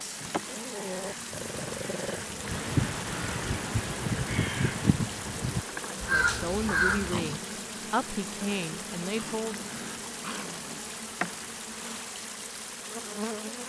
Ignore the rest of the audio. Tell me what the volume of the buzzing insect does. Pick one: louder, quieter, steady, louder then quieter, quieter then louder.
steady.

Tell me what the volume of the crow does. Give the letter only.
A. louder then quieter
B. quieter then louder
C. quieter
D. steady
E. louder
E.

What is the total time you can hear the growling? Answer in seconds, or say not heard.
5 s.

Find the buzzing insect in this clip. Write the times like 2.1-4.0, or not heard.
0.0-13.6.